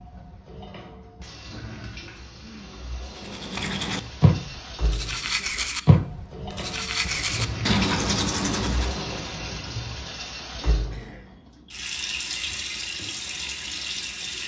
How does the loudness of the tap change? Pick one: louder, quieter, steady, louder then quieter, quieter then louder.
louder.